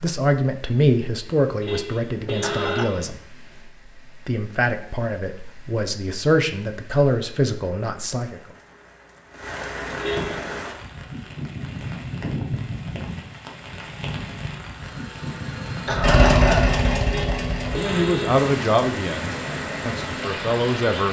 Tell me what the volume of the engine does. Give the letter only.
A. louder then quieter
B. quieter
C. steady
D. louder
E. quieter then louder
A.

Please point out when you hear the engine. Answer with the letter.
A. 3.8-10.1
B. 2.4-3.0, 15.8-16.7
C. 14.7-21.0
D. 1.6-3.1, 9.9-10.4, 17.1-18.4
C.